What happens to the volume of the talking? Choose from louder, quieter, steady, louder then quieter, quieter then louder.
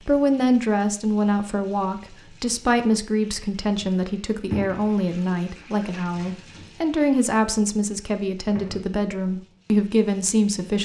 steady.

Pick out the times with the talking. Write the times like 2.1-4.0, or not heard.
0.1-10.8.